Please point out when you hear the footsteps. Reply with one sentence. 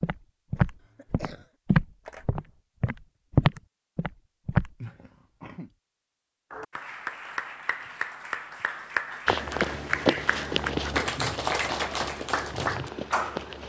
You can hear the footsteps from 0.0 to 4.7 s and from 9.2 to 13.6 s.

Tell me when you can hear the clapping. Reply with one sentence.
The clapping can be heard from 6.5 to 13.4 s.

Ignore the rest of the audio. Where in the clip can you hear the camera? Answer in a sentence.
You can hear the camera from 2.0 to 2.6 s.